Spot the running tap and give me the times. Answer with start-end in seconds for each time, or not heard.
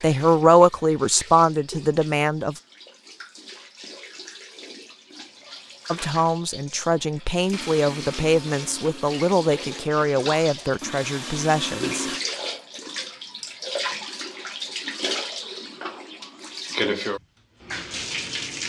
0.0-18.6.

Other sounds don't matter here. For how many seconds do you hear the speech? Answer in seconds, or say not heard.
9 s.